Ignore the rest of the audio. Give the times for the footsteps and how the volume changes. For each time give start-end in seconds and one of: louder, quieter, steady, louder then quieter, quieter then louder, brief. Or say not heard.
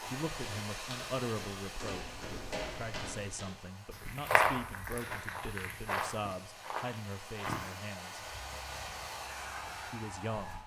0.0-10.6 louder then quieter.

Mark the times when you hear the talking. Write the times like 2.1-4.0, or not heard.
0.0-8.3, 9.9-10.6.